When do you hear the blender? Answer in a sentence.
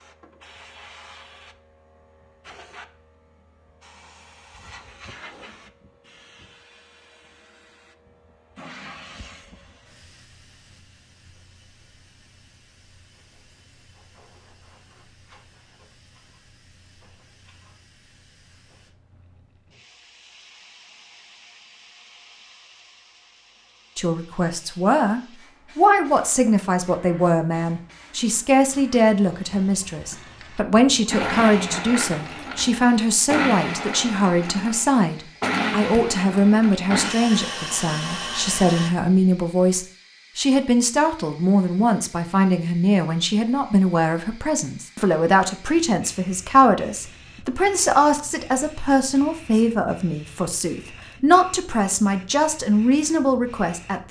The blender can be heard from 31.1 to 38.9 s.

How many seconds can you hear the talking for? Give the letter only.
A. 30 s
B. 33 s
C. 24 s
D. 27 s
A.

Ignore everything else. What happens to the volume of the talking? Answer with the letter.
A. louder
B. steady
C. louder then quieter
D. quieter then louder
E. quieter
B.